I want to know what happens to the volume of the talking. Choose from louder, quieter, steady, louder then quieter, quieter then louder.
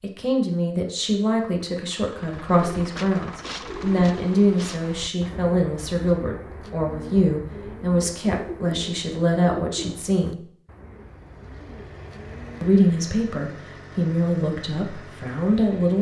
steady.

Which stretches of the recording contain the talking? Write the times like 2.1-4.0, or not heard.
0.0-10.4, 12.6-15.9.